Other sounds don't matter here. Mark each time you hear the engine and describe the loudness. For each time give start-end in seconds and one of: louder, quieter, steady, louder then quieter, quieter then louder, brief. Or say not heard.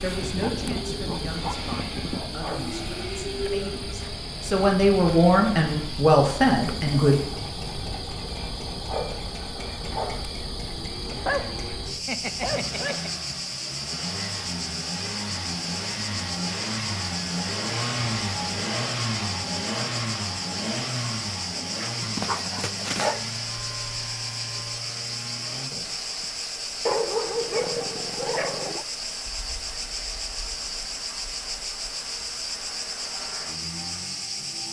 0.0-34.6 louder then quieter.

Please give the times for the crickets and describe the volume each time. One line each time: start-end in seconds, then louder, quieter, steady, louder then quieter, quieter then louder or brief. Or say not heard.
0.0-34.6 steady.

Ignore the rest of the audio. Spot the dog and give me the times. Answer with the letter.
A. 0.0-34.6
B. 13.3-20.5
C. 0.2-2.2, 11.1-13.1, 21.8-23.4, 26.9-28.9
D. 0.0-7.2
C.